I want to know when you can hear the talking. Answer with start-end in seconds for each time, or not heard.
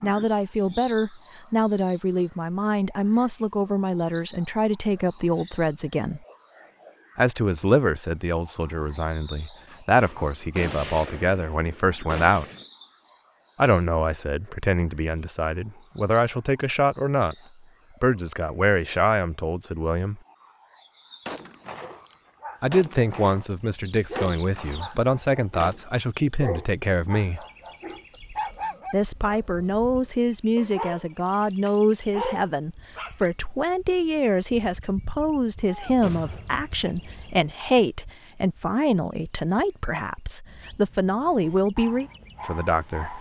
0.0-6.2, 7.2-12.4, 13.6-17.4, 18.0-20.2, 22.6-27.4, 28.9-43.1.